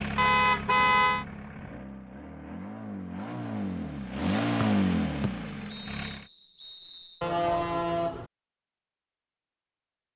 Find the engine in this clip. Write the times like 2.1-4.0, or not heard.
0.0-6.2.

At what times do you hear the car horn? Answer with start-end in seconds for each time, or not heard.
0.1-1.2, 7.2-8.2.